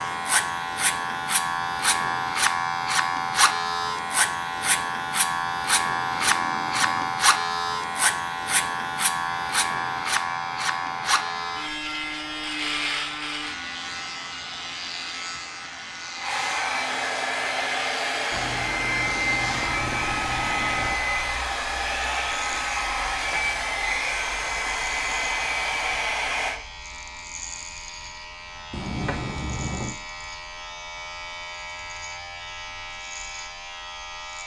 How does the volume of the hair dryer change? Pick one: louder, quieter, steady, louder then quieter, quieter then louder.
louder.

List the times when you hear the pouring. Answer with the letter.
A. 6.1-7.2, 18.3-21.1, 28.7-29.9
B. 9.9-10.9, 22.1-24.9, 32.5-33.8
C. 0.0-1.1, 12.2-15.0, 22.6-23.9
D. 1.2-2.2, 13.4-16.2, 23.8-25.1
A.